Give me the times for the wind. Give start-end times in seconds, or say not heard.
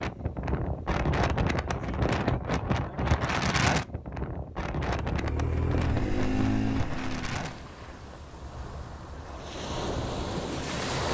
0.0-11.0.